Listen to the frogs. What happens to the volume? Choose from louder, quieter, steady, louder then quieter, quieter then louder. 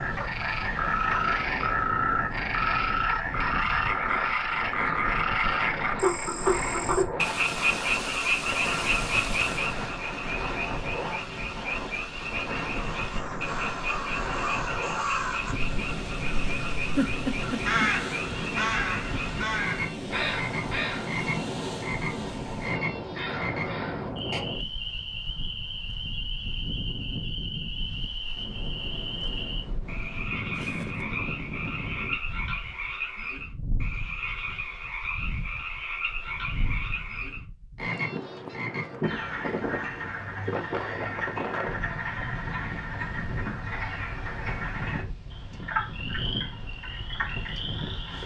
quieter.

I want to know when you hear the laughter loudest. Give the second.
17 s.